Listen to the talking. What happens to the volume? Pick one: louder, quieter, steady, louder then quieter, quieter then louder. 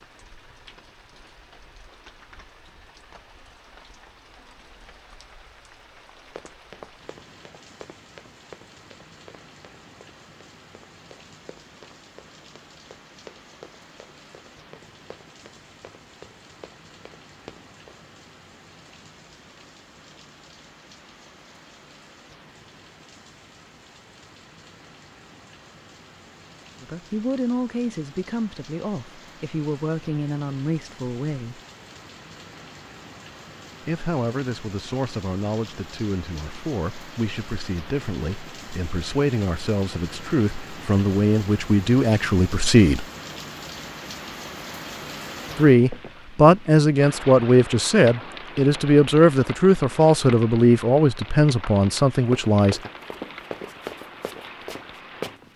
louder.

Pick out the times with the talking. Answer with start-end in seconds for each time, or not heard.
26.8-31.6, 33.8-43.0, 45.5-52.9.